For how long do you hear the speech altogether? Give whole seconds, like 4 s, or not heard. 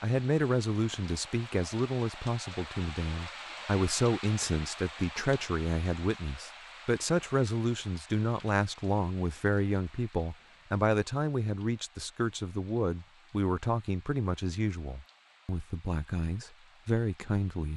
18 s.